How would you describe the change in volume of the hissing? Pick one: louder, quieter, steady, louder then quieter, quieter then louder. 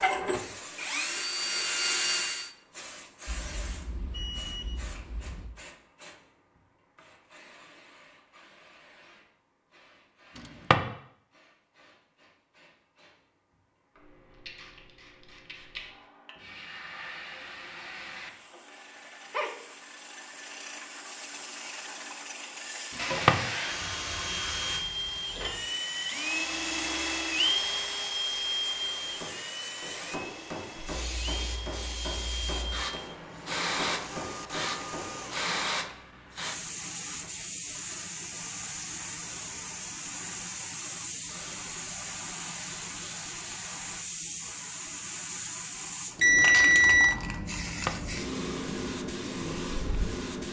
louder.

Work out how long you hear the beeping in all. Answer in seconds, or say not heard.
3 s.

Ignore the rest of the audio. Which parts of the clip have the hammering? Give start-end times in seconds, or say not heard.
28.9-35.4.